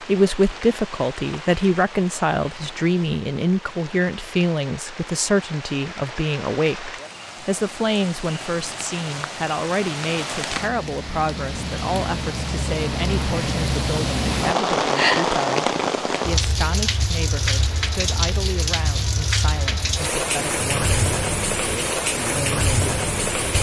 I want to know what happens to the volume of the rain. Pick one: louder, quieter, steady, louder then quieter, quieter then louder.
louder.